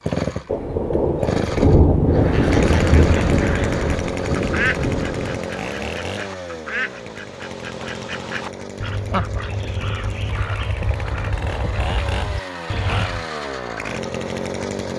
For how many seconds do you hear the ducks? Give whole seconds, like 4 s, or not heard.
11 s.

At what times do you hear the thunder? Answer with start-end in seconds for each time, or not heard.
0.5-5.4.